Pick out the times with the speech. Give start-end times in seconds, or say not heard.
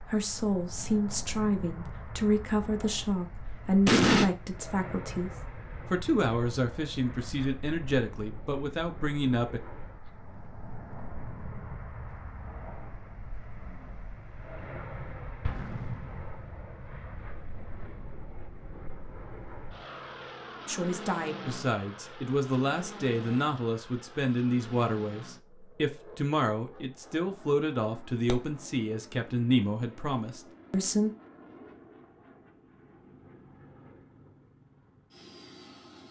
0.1-9.6, 20.6-31.1.